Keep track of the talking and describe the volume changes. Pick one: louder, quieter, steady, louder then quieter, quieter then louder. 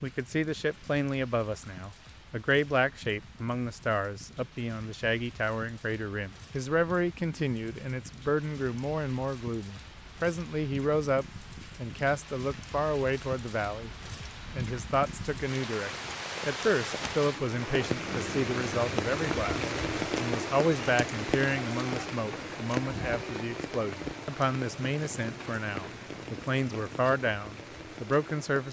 steady.